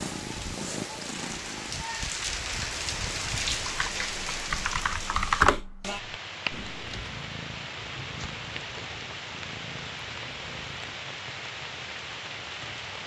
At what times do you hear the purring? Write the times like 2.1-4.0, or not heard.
0.0-1.9, 6.7-10.9.